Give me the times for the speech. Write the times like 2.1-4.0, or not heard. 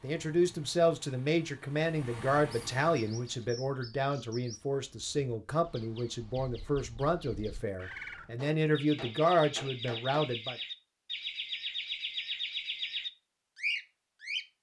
0.0-10.6.